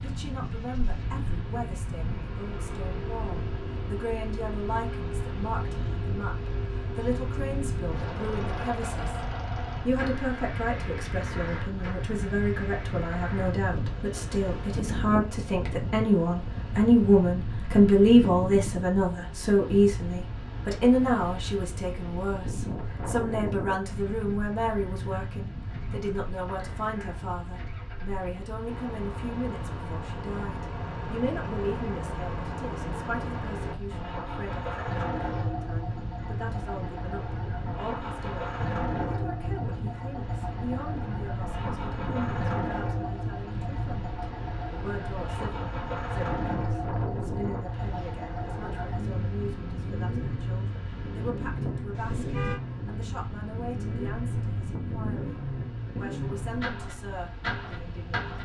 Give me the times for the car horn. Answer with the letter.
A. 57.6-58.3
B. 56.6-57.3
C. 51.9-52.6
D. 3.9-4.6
C.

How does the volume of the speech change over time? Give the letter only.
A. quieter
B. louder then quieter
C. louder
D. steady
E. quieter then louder
B.